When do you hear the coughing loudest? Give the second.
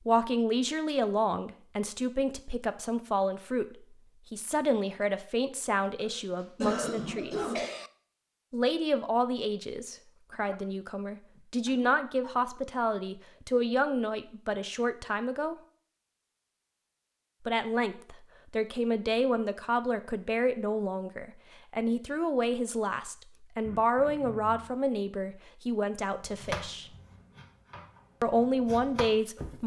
7 s.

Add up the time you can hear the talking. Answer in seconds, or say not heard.
25 s.